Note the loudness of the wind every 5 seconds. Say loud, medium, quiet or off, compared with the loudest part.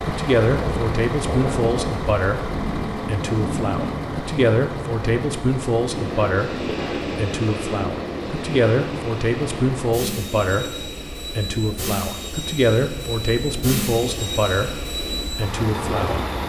loud, loud, medium, loud.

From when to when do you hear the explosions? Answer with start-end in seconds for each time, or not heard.
not heard.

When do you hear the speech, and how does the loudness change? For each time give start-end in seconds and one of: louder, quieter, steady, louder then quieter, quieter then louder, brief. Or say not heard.
0.0-16.2 steady.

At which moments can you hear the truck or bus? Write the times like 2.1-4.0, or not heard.
0.0-16.4.